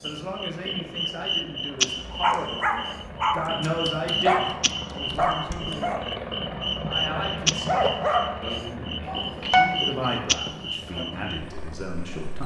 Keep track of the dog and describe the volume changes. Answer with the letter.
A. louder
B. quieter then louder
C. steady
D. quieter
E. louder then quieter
B.